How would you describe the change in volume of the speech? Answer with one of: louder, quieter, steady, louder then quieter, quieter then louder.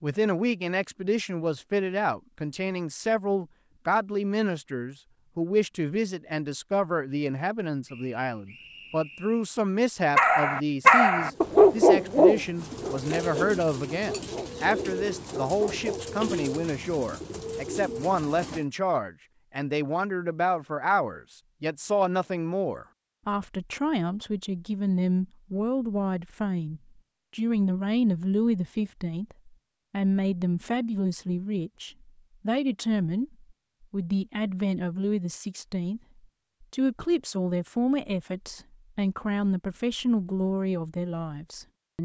steady.